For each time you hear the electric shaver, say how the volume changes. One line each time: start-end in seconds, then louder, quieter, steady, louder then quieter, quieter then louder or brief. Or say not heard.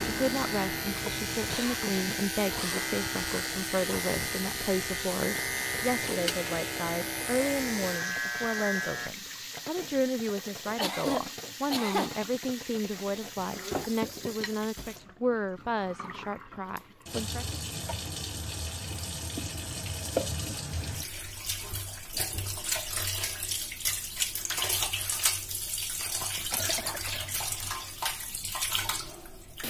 0.0-9.1 steady.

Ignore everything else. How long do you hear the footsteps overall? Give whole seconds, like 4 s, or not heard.
not heard.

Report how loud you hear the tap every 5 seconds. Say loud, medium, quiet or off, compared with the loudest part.
medium, medium, medium, medium, loud, loud.